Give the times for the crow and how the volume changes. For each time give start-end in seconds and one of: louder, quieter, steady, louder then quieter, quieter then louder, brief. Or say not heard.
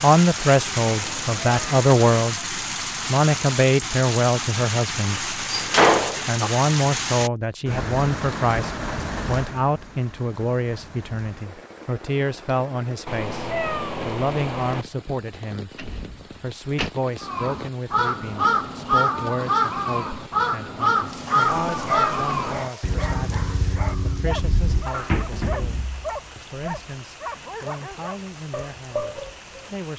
17.2-25.2 quieter.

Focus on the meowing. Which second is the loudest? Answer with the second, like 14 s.
14 s.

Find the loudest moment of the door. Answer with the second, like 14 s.
6 s.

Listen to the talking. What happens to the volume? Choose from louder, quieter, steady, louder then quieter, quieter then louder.
quieter.